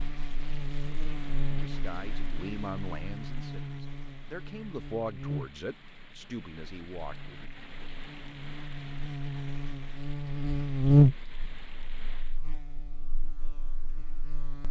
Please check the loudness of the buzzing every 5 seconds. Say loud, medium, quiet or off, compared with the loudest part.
quiet, quiet, loud.